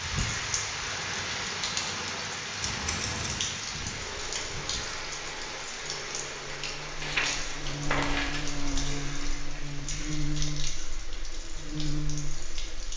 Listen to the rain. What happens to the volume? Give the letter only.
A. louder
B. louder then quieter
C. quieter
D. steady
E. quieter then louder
C.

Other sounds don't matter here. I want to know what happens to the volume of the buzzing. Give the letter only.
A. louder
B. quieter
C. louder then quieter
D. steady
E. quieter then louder
A.